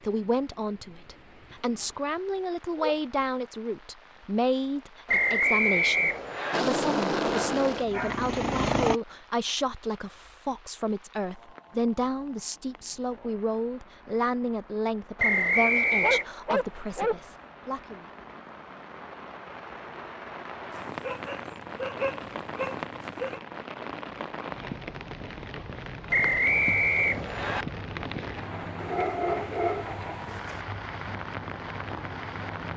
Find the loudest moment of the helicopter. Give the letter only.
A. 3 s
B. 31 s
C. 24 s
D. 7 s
D.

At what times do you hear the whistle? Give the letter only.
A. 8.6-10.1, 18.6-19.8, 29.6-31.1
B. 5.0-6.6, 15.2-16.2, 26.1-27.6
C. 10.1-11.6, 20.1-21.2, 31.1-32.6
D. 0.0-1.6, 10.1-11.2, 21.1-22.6
B.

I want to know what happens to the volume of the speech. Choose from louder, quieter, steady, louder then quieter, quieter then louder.
steady.